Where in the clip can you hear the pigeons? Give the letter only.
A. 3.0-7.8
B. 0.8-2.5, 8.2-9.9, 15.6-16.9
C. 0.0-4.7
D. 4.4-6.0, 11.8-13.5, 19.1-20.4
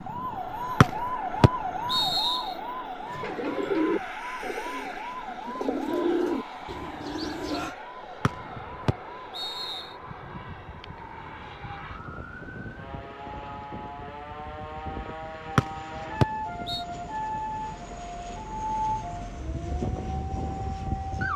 A.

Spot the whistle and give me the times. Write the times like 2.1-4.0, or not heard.
0.8-2.5, 8.2-9.9, 15.6-16.9.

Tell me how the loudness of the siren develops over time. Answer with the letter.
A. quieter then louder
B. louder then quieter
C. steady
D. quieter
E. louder
A.